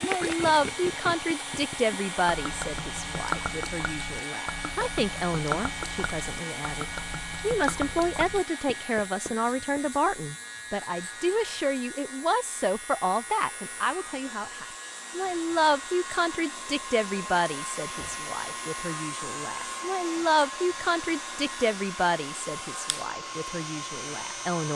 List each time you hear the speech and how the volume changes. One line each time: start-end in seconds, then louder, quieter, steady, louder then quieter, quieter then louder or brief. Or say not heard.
0.0-24.6 steady.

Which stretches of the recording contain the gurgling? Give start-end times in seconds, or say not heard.
0.0-8.4.